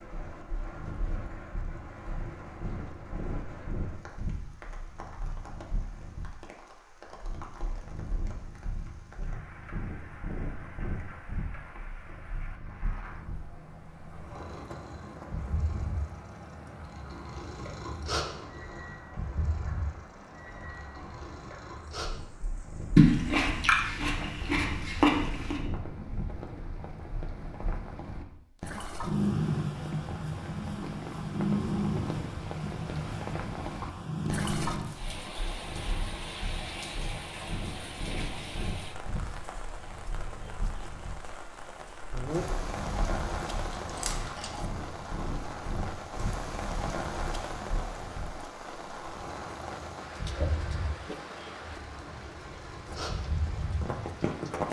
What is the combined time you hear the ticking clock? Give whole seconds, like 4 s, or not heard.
not heard.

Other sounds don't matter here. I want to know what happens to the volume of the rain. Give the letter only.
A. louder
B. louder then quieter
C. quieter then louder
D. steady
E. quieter
A.